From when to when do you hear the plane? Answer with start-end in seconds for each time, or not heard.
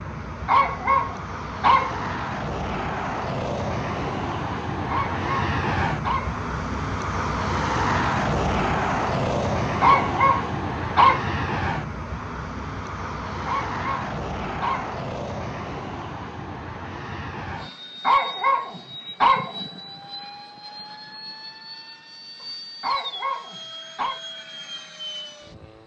0.0-25.8.